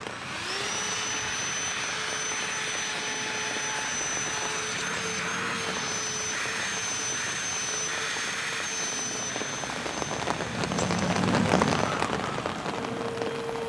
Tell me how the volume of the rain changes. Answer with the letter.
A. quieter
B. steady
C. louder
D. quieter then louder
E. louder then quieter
C.